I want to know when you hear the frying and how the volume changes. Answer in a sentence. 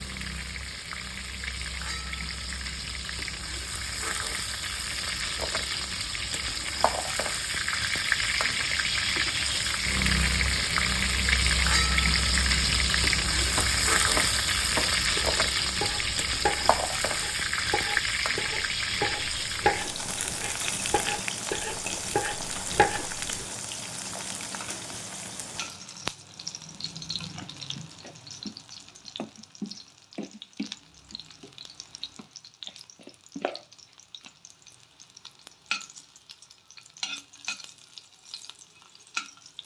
You can hear the frying from 0.0 to 39.6 s, getting louder then quieter.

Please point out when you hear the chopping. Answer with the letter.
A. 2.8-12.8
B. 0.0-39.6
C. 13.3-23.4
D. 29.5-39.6
C.